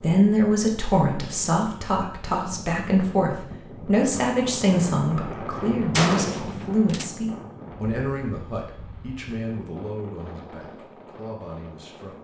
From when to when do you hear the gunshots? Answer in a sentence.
The gunshots can be heard from 5.9 to 7.1 s.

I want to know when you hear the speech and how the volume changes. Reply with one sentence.
You can hear the speech from 0.0 to 12.1 s, getting quieter.